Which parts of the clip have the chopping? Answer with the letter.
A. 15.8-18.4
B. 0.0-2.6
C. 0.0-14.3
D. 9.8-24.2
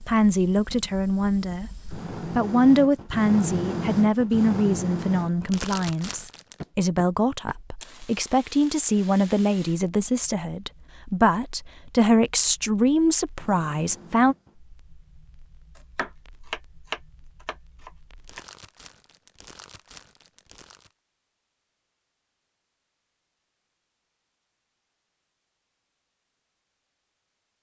A.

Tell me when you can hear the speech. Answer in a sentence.
The speech can be heard from 0.0 to 14.3 s.